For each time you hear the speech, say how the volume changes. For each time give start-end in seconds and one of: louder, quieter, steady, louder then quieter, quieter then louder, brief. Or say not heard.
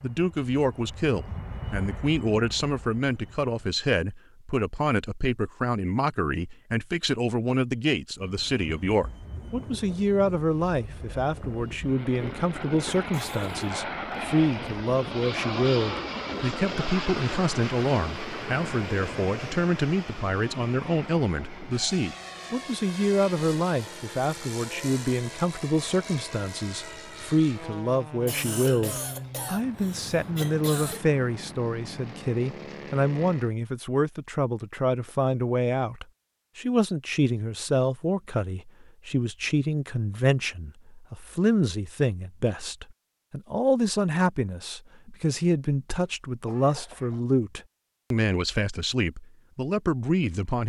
0.0-50.6 steady.